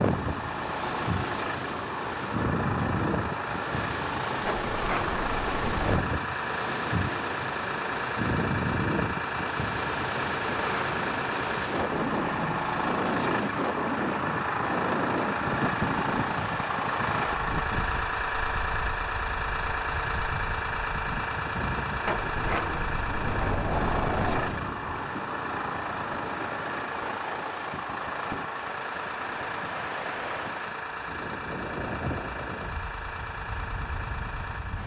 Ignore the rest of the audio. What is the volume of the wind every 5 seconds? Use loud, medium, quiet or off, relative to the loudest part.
loud, loud, loud, loud, medium, medium, medium.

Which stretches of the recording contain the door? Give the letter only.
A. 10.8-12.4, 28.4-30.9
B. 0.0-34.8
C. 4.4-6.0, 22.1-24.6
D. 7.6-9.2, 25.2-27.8
C.